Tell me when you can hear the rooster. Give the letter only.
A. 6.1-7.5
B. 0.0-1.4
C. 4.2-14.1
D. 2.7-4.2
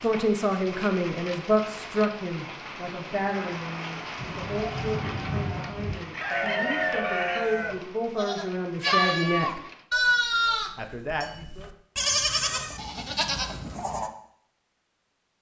A.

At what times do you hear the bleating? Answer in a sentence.
You can hear the bleating from 4.2 to 14.1 s.